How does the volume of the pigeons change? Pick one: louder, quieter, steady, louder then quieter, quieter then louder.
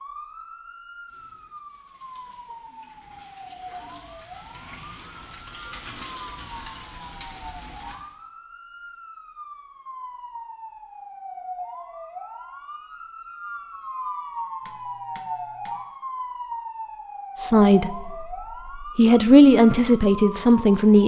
louder.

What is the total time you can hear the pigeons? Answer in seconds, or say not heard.
7 s.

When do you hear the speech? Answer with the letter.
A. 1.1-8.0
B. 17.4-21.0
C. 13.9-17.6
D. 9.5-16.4
B.